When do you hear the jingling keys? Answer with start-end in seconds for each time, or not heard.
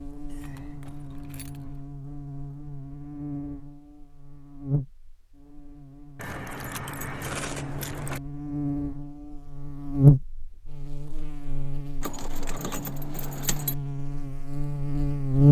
0.3-1.8, 6.2-8.2, 12.0-13.8.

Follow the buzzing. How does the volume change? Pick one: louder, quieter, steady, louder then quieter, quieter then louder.
louder then quieter.